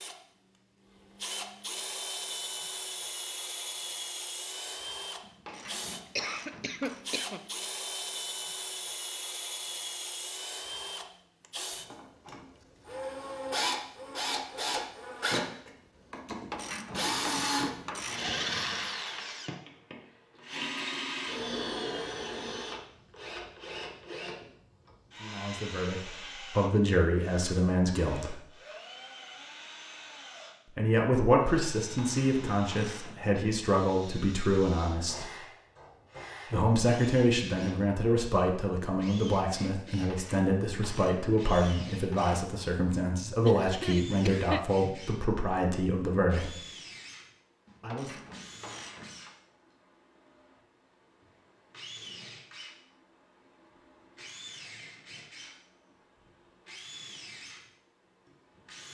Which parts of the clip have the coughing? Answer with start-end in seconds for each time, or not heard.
5.5-7.5, 43.5-44.6.